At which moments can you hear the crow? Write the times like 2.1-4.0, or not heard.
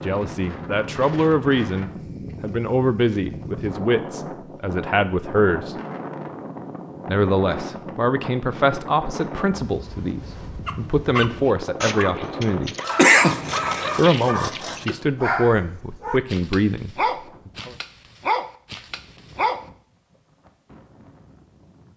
not heard.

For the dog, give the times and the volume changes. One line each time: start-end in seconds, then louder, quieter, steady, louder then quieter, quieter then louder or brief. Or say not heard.
10.7-19.6 steady.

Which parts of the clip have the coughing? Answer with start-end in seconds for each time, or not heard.
12.9-13.9.